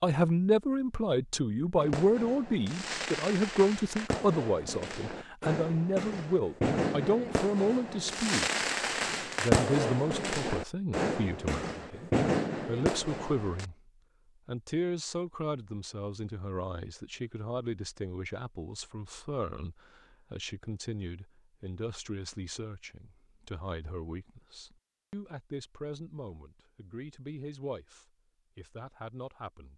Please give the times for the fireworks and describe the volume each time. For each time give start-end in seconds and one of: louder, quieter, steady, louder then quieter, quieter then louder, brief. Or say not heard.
1.8-13.7 louder.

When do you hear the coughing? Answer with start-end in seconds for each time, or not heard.
not heard.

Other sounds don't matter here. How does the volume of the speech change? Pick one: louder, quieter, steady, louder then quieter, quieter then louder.
quieter.